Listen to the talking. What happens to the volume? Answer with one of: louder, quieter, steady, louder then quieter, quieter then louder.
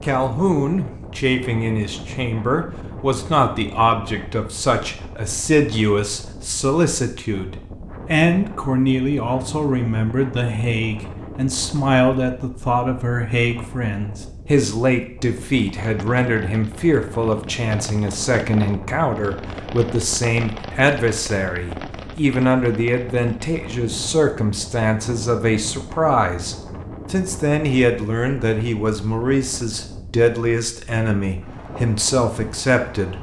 steady.